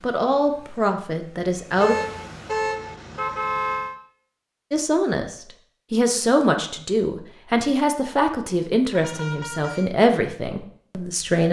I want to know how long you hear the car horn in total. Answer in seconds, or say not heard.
3 s.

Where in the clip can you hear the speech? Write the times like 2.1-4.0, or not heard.
0.0-1.9, 4.7-11.4.